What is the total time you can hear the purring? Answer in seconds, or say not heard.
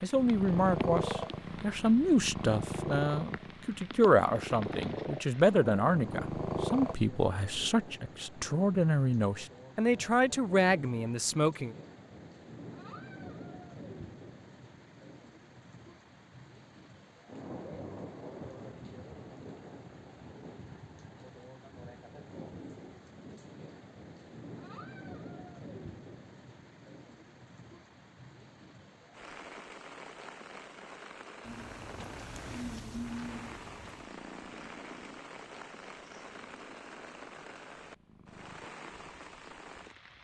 14 s.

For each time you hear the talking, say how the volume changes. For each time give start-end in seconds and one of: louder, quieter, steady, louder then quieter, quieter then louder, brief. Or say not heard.
0.0-11.8 steady.